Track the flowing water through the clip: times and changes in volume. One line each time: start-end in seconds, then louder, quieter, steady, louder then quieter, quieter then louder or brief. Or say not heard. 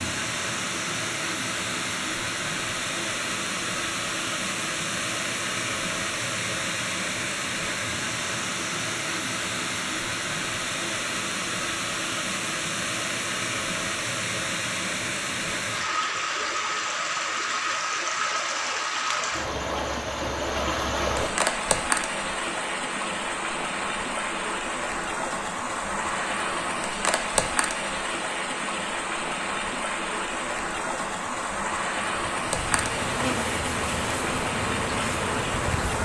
0.0-36.0 steady.